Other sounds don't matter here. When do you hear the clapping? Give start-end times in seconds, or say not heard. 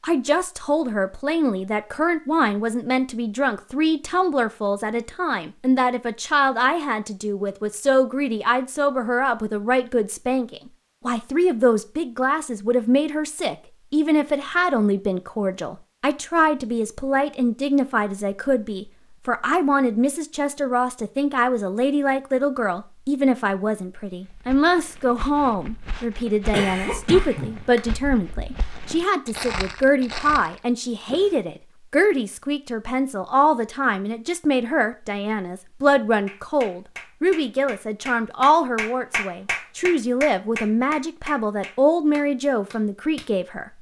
36.2-43.5.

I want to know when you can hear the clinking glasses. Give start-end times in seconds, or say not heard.
not heard.